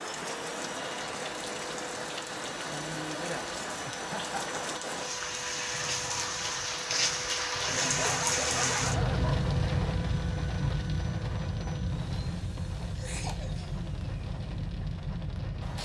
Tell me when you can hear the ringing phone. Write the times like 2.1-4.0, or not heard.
not heard.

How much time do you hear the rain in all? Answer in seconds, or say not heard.
16 s.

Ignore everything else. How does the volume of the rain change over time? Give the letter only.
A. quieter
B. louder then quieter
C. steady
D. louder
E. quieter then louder
B.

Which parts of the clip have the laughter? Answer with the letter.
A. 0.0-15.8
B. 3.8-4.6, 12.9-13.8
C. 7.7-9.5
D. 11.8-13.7
B.